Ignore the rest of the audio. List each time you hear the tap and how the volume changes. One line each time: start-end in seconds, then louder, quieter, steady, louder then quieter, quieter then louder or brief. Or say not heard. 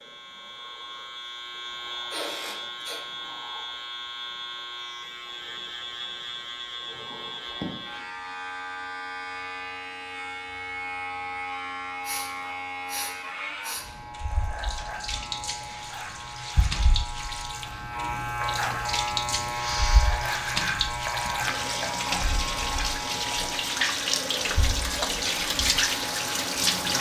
13.8-26.9 louder.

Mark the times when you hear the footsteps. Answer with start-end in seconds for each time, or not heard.
not heard.